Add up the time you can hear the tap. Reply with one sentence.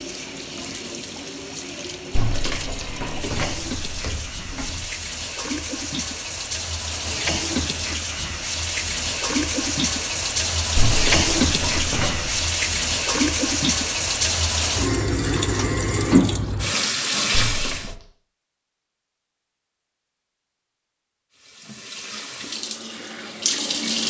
You can hear the tap for 21 seconds altogether.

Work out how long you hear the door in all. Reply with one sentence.
You can hear the door for 5 seconds altogether.